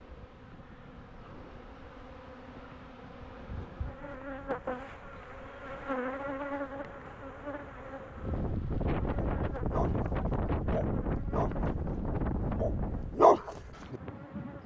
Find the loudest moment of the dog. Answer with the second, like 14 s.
13 s.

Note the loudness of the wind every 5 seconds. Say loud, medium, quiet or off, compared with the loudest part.
quiet, loud, loud.